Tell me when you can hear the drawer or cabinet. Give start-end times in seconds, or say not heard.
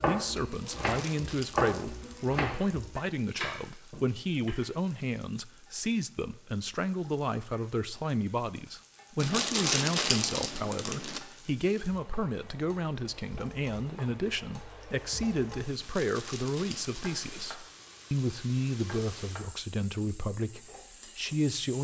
not heard.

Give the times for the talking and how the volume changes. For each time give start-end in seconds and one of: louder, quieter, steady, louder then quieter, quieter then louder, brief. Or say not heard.
0.0-21.7 steady.